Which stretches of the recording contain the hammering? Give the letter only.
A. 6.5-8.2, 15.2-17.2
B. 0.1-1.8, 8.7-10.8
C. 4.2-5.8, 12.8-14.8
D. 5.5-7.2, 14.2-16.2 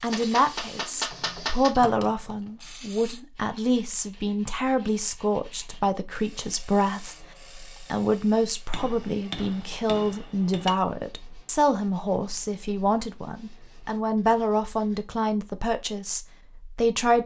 B.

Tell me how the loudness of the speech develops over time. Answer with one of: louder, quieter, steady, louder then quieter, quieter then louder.
steady.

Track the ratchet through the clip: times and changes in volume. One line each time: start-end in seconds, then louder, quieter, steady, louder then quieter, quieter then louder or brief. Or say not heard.
not heard.